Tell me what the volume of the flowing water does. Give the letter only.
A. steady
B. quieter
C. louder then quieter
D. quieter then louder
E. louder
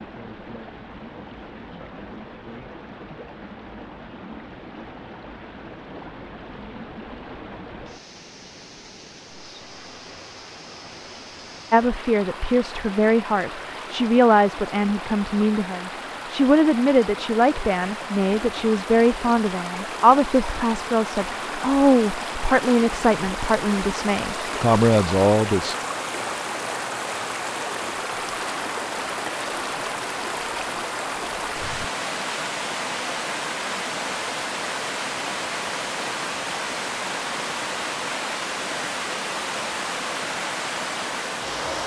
E.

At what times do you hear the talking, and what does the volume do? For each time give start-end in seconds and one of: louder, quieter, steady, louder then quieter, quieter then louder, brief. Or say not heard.
11.7-25.8 steady.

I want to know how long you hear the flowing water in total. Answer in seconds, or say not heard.
42 s.